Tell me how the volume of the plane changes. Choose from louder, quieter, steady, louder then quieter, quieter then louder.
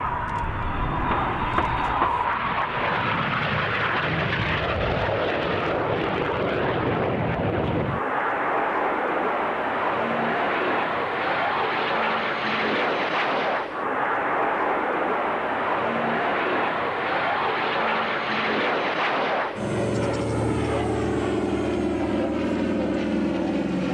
steady.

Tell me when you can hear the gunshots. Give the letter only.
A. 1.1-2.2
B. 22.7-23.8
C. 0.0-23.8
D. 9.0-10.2
A.